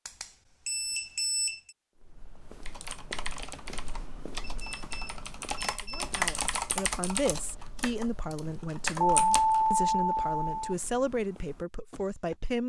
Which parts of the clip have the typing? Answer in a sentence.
You can hear the typing from 2.6 to 9.8 s.